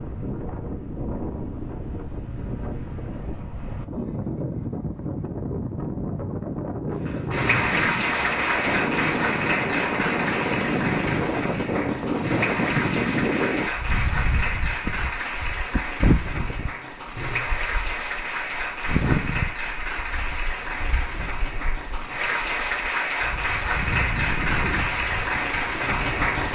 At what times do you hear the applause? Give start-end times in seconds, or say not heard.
7.0-26.5.